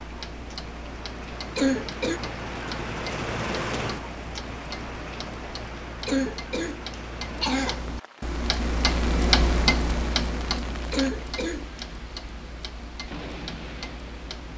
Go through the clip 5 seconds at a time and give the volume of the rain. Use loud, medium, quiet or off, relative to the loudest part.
loud, medium, medium.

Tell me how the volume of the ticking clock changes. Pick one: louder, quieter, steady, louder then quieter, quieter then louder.
louder then quieter.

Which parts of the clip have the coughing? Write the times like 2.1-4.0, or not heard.
1.6-2.2, 6.0-8.0, 10.9-11.8.